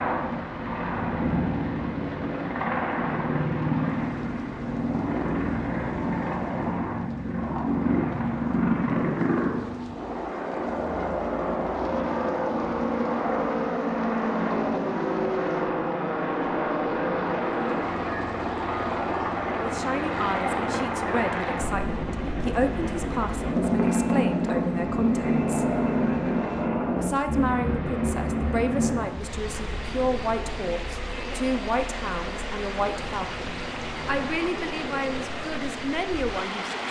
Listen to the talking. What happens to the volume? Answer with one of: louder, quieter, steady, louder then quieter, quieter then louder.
steady.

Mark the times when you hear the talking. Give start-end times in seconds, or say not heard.
19.4-25.6, 27.0-36.8.